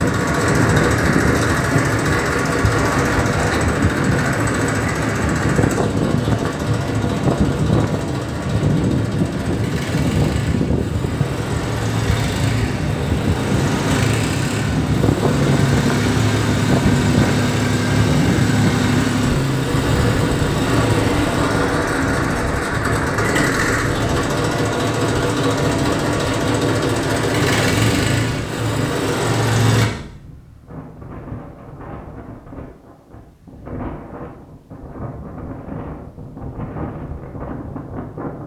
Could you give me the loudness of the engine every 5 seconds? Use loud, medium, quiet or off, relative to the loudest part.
loud, medium, medium, loud, loud, loud, off, off.